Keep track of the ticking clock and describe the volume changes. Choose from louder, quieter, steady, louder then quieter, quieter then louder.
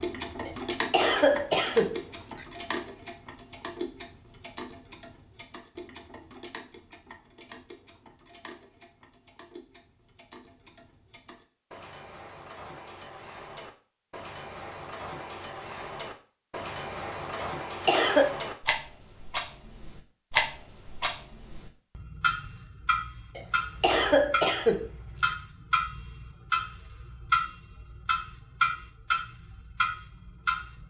quieter then louder.